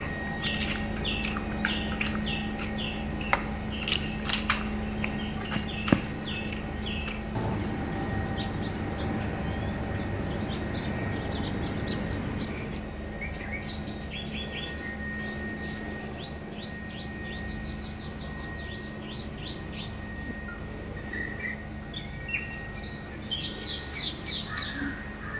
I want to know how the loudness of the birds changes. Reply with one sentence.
The loudness of the birds goes down, then up.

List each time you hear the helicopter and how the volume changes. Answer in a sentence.
The helicopter can be heard from 0.0 to 25.3 s, getting quieter.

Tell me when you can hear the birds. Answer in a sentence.
You can hear the birds from 0.0 to 25.3 s.